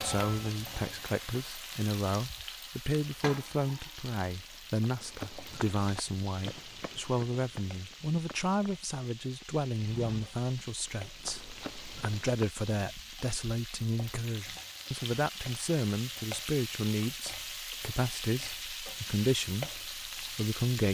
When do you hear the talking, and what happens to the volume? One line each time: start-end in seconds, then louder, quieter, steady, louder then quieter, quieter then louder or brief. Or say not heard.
0.0-20.8 steady.